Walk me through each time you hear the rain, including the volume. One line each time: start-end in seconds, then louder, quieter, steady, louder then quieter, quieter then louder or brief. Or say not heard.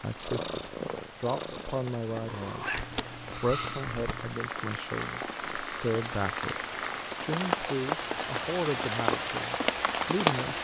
0.0-10.5 louder.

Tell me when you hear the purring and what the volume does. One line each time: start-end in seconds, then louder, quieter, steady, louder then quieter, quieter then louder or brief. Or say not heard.
0.1-7.0 steady.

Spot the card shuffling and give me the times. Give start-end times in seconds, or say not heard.
2.7-4.3.